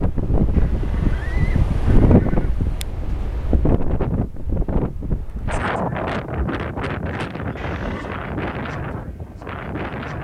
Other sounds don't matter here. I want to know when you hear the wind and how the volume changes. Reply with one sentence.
You can hear the wind from 0.0 to 10.1 s, getting quieter.